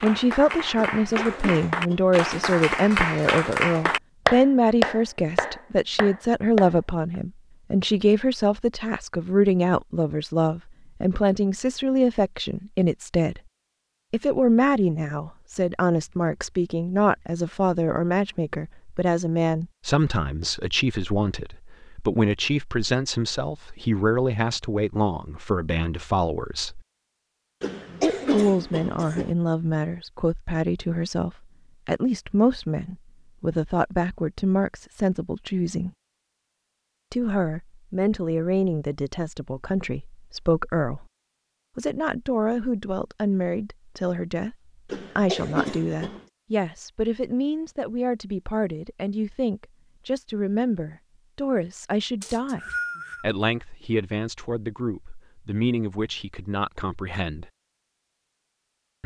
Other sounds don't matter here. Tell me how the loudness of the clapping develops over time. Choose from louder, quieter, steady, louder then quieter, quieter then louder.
louder then quieter.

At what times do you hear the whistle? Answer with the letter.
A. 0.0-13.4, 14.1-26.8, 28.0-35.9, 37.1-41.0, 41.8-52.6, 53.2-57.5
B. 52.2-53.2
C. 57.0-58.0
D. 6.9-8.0
B.